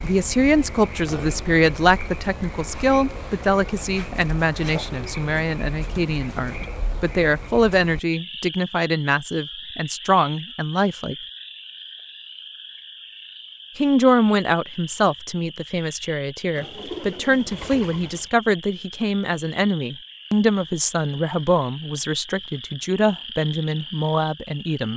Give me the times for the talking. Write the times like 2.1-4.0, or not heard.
0.0-11.2, 13.8-24.9.